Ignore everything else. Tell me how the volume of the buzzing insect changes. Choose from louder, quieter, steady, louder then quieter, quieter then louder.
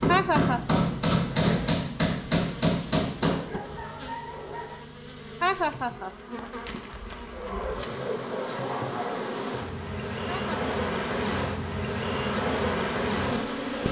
louder.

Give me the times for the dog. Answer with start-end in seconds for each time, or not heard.
3.5-4.8, 7.3-9.3.